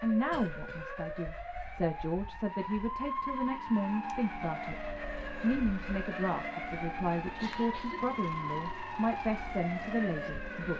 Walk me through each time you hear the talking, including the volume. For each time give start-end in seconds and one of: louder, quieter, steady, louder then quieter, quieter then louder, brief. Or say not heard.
0.0-10.7 steady.